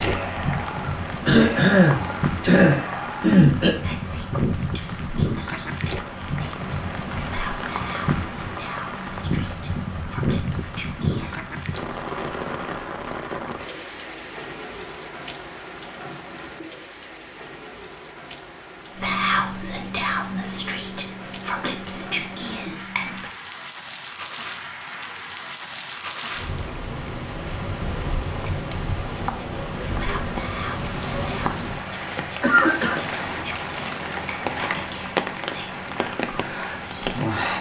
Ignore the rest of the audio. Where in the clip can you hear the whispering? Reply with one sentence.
The whispering can be heard from 0.0 to 11.4 s, from 18.9 to 23.3 s and from 29.2 to 37.5 s.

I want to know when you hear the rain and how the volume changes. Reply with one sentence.
You can hear the rain from 0.0 to 37.5 s, getting quieter then louder.